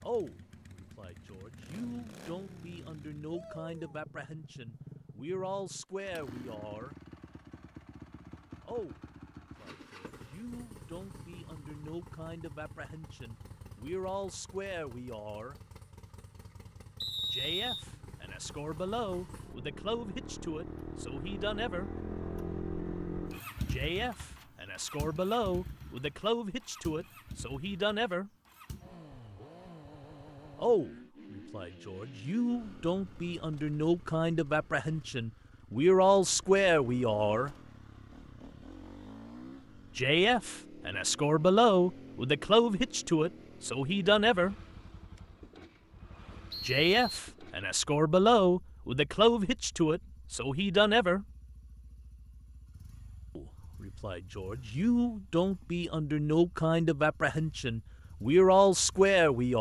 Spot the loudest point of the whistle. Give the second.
17 s.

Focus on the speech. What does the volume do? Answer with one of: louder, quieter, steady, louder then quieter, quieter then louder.
louder.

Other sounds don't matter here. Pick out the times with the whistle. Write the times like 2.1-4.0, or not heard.
17.0-17.9, 46.5-47.2.